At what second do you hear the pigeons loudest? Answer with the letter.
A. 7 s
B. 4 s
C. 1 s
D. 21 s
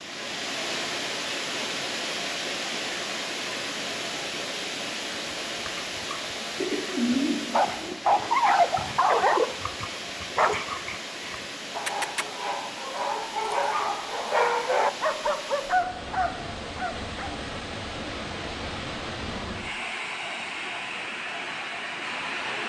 A.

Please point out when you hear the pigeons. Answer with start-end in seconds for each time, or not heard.
6.5-8.3.